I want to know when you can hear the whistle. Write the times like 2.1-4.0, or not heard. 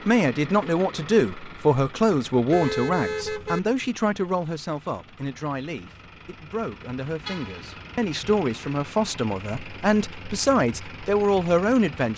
not heard.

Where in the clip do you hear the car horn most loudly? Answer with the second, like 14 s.
3 s.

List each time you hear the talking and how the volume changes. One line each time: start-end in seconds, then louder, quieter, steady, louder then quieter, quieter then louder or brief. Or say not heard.
0.1-12.1 quieter then louder.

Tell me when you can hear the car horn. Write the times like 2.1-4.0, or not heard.
2.5-3.6, 7.2-7.7.